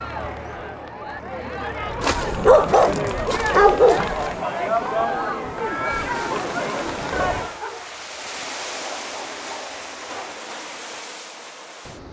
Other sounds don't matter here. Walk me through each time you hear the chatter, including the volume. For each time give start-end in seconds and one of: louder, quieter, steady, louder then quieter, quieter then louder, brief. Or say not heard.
0.0-7.6 louder.